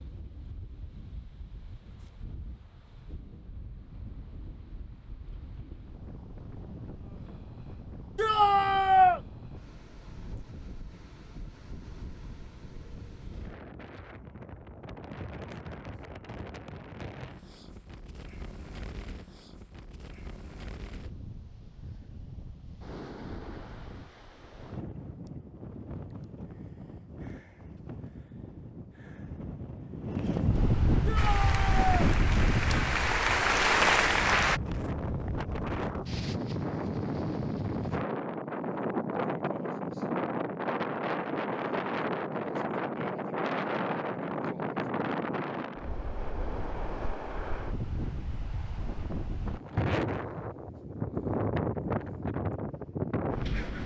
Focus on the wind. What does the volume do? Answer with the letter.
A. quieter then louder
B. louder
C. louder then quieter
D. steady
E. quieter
B.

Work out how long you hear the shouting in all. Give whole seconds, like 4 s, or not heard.
2 s.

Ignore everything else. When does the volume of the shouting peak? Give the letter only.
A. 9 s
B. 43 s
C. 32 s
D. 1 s
A.